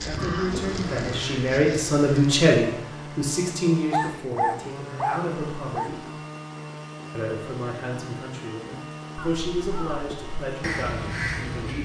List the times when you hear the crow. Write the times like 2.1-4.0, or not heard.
0.0-2.4, 9.2-11.8.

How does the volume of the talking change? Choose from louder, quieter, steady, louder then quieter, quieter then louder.
quieter.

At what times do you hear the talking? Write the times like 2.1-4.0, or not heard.
0.1-6.0, 7.1-11.8.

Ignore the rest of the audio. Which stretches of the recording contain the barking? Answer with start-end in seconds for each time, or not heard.
3.5-5.9.